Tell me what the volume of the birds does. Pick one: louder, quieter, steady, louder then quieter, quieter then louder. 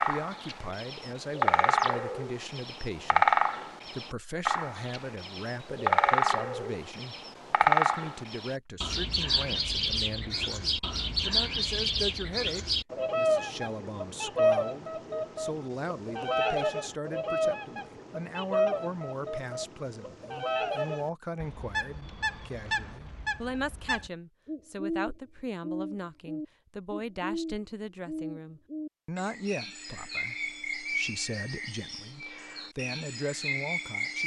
quieter.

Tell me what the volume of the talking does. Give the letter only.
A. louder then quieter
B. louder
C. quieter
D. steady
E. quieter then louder
D.